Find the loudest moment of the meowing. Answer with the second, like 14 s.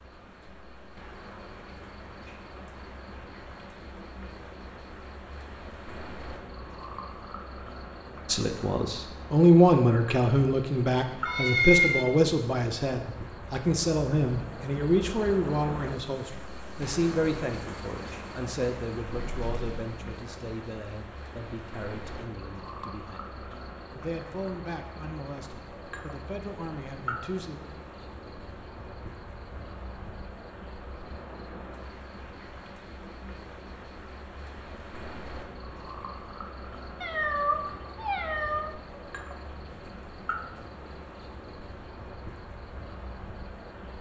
12 s.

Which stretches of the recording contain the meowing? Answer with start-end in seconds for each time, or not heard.
11.2-12.1, 19.1-19.9, 37.0-38.7.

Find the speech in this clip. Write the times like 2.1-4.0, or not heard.
8.2-27.6.